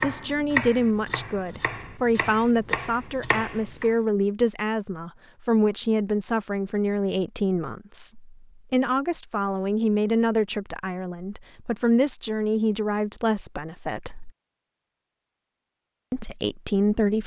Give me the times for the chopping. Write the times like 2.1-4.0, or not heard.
0.0-4.0.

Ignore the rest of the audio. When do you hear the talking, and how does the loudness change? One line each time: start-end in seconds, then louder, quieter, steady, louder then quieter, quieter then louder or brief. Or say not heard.
0.0-14.3 steady
16.1-17.2 brief.